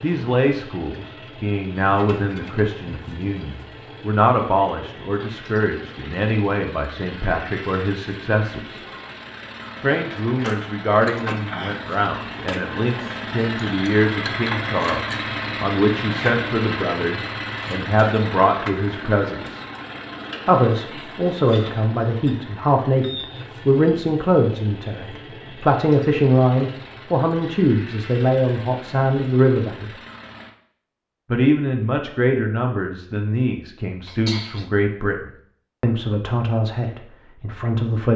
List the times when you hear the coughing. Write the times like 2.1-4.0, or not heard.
34.0-34.6.